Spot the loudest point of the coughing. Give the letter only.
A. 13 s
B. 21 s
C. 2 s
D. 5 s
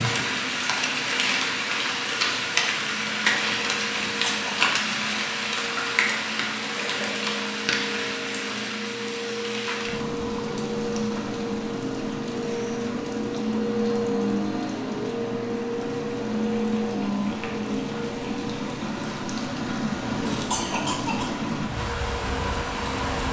B.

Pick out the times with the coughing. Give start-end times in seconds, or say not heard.
4.2-4.7, 20.3-21.3.